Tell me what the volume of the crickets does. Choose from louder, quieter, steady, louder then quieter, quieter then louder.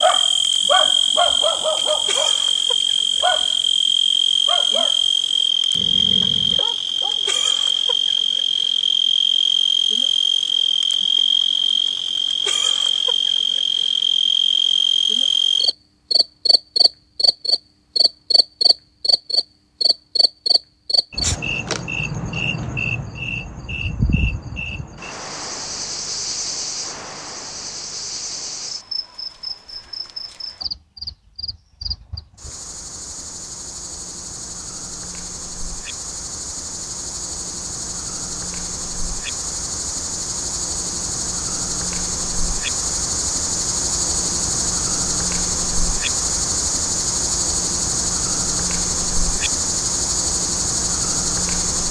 quieter then louder.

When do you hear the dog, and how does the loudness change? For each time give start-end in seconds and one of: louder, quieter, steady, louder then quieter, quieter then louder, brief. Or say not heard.
0.0-7.4 quieter.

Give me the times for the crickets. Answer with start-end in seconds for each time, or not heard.
0.0-51.8.